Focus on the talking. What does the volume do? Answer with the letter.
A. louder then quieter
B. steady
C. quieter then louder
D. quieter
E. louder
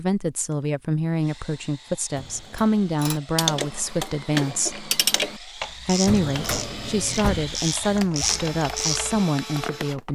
B.